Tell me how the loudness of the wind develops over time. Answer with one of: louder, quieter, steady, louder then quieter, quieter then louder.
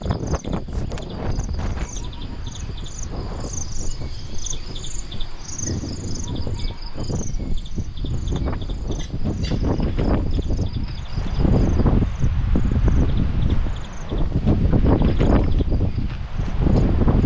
louder.